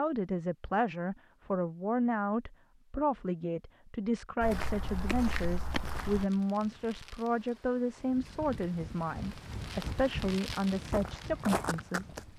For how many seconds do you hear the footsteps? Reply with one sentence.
The footsteps can be heard for 3 seconds in total.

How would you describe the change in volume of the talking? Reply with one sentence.
The loudness of the talking stays about the same.